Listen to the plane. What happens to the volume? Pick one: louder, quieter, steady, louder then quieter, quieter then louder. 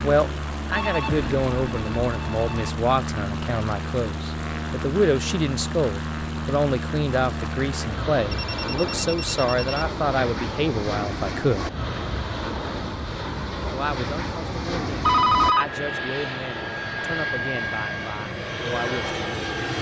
steady.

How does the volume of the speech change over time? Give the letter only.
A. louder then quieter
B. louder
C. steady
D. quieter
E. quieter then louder
D.